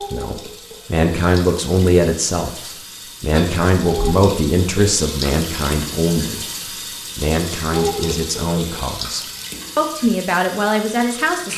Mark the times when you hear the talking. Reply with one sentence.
The talking can be heard from 0.1 to 6.5 s and from 7.2 to 11.5 s.